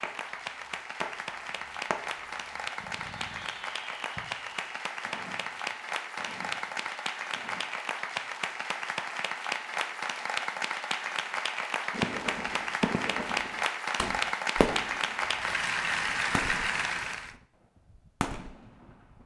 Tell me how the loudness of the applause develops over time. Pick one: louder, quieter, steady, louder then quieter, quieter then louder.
louder.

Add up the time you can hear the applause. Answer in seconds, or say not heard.
17 s.